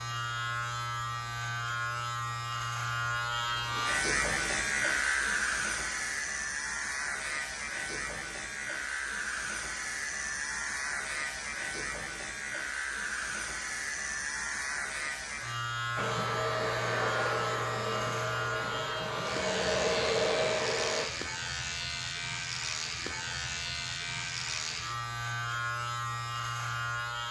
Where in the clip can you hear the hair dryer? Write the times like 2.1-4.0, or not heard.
15.9-21.1.